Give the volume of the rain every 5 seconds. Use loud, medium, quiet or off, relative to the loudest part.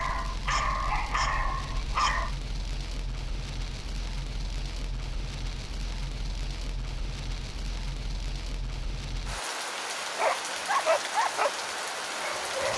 medium, medium, loud.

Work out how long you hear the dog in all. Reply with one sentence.
The dog can be heard for 5 seconds in total.